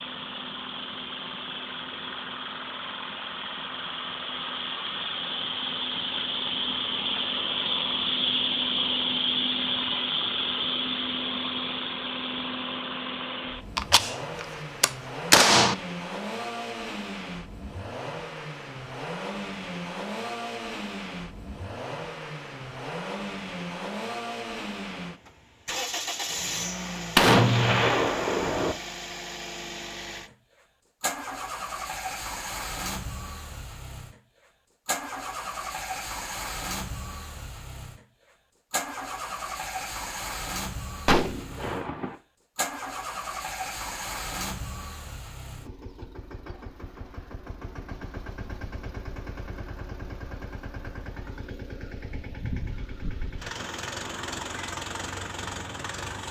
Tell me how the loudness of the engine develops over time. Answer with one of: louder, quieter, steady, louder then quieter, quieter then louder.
quieter.